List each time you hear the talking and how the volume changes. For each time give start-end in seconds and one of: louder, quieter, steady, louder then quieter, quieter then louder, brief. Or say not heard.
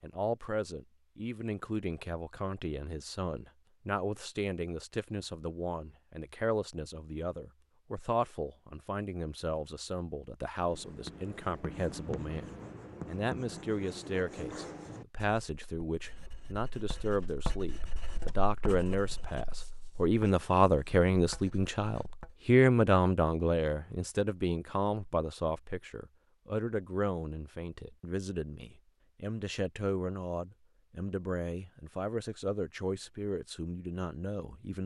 0.0-34.8 louder then quieter.